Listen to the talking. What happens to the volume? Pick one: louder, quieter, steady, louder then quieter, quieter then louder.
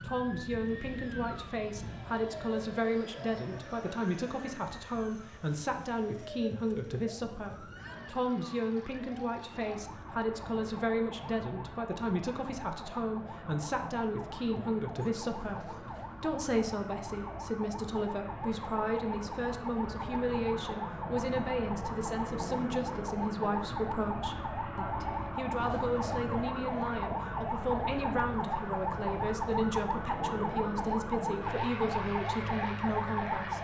steady.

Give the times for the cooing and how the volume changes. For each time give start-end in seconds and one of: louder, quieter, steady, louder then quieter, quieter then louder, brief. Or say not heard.
not heard.